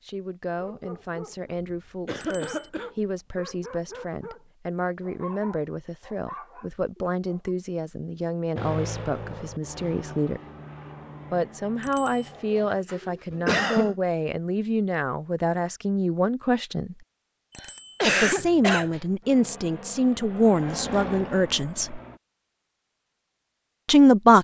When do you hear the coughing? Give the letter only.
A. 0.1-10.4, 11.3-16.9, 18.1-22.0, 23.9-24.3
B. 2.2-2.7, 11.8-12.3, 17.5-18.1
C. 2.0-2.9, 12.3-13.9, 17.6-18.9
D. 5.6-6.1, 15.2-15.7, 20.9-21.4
C.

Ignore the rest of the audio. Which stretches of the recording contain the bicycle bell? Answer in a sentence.
The bicycle bell can be heard from 2.2 to 2.7 s, from 11.8 to 12.3 s and from 17.5 to 18.1 s.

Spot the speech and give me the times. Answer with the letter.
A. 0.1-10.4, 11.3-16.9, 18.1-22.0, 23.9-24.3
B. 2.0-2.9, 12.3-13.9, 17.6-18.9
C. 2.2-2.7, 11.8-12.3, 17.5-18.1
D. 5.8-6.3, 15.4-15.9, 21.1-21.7
A.